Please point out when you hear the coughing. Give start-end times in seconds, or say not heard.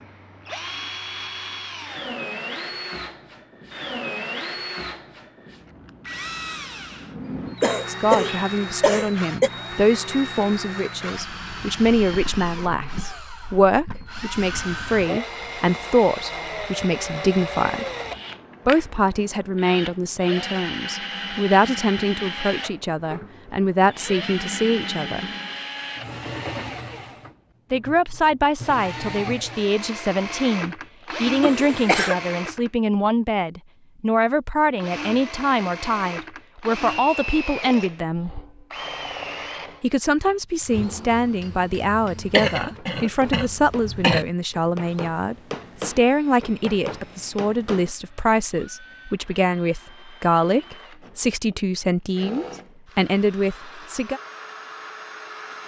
7.6-9.5, 31.4-32.1, 42.2-44.2.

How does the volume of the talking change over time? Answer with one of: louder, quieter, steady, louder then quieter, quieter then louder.
steady.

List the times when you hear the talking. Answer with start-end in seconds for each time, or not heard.
7.8-17.9, 18.6-25.3, 27.7-38.3, 39.8-54.2.